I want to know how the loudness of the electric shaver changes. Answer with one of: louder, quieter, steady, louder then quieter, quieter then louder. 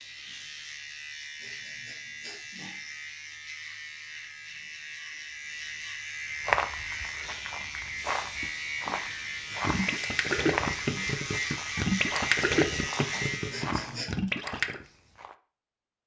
louder.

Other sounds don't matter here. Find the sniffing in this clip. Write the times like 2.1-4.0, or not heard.
1.4-2.4, 13.5-14.2.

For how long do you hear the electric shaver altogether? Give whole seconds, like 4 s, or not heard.
14 s.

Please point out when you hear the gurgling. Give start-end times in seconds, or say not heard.
9.7-14.8.